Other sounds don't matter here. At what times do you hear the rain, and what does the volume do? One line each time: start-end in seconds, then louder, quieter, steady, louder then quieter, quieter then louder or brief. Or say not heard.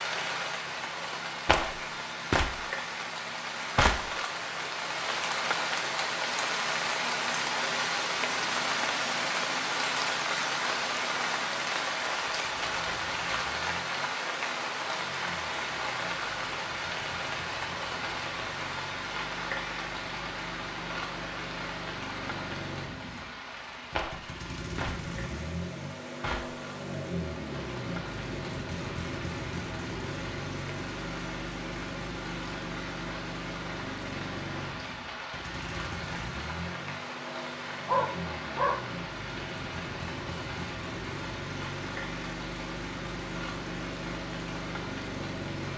0.0-45.7 quieter.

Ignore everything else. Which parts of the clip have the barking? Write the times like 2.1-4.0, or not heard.
37.9-38.9.